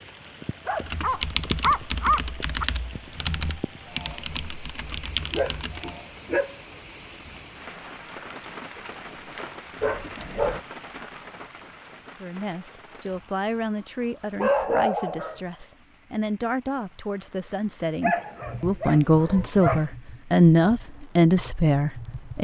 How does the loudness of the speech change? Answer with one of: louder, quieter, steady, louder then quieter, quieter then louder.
louder.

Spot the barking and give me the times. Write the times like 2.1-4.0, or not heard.
0.7-2.6, 5.3-6.5, 9.8-10.6, 14.3-15.4, 18.0-19.9.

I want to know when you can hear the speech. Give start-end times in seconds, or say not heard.
12.2-22.3.